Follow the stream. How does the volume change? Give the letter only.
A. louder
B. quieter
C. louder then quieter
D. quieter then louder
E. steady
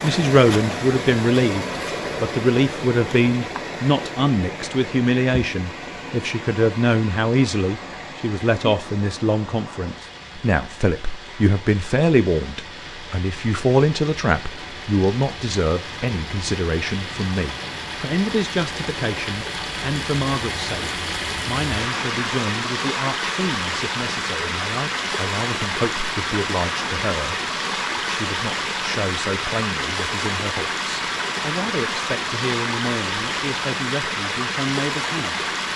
D.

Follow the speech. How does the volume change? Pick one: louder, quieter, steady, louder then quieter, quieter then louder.
quieter.